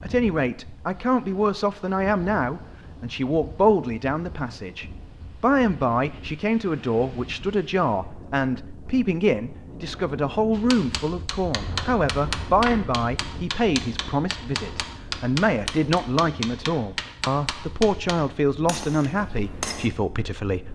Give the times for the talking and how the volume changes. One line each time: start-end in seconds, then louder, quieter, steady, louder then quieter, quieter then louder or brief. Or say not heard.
0.0-20.7 steady.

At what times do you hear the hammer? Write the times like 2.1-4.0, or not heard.
10.5-19.9.